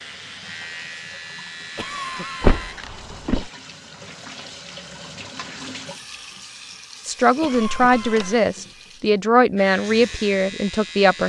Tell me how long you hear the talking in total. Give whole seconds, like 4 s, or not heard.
4 s.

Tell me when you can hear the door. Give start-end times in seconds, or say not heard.
2.4-3.5, 7.5-8.3.